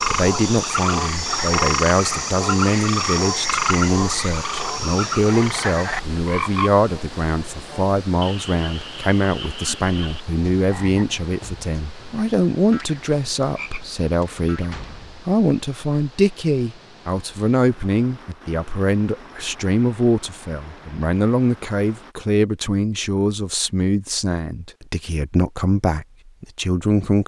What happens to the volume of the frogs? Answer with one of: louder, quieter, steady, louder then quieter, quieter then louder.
quieter.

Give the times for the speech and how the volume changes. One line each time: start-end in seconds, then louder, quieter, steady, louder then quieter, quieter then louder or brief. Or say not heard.
0.1-27.2 steady.